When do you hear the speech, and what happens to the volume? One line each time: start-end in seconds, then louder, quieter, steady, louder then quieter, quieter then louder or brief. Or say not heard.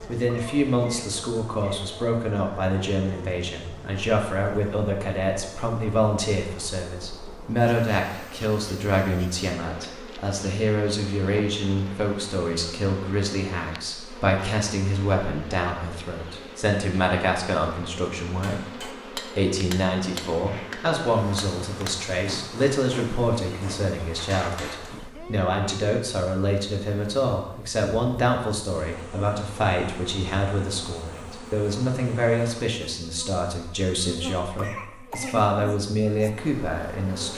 0.1-37.3 steady.